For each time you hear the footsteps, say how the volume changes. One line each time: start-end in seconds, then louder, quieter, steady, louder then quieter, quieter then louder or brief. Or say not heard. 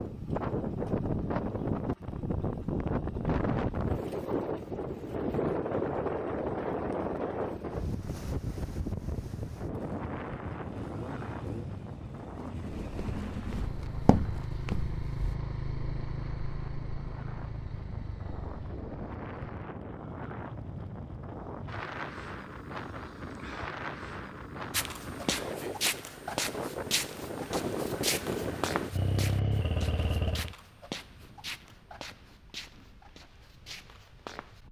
12.7-15.3 brief
24.7-34.6 quieter.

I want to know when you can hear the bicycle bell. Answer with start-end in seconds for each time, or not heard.
not heard.